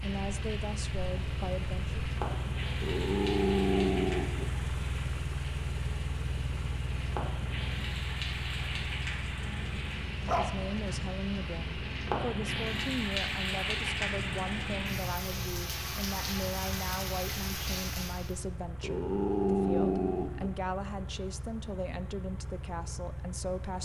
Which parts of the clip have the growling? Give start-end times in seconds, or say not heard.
2.8-4.5, 9.4-11.0, 18.8-20.5.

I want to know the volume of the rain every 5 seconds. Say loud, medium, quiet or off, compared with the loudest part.
medium, medium, loud, loud, off.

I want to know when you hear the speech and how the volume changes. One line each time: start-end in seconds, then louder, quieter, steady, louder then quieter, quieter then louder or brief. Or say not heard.
0.0-2.0 brief
10.2-23.8 steady.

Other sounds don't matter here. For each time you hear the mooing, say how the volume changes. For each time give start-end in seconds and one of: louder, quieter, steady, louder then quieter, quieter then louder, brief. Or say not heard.
not heard.